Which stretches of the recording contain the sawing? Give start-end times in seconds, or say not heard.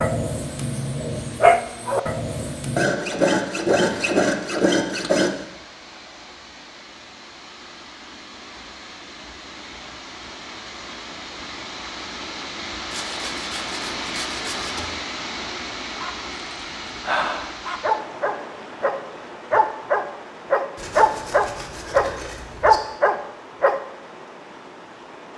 2.8-5.4, 12.9-14.9, 20.8-22.8.